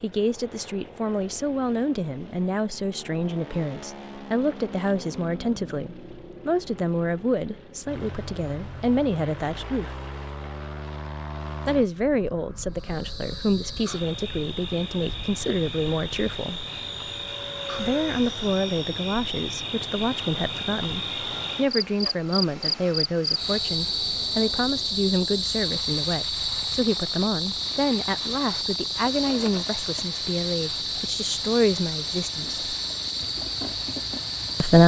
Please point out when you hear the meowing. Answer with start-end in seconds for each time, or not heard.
not heard.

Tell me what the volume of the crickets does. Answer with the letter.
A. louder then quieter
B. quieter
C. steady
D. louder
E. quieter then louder
D.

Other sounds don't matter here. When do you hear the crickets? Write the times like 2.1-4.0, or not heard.
12.7-34.8.